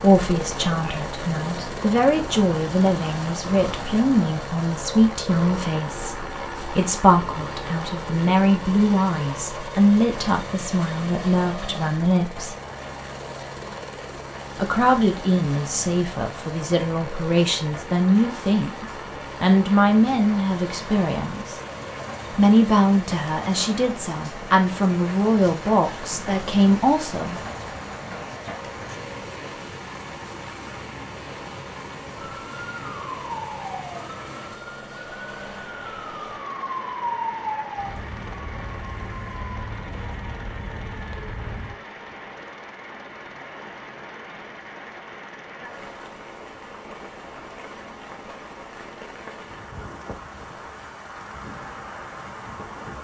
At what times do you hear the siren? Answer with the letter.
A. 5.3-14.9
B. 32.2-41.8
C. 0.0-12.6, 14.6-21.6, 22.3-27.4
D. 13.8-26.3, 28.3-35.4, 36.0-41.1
B.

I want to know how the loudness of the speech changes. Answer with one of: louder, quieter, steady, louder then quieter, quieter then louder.
steady.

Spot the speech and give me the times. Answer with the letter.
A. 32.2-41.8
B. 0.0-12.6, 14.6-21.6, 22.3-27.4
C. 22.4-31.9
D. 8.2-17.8
B.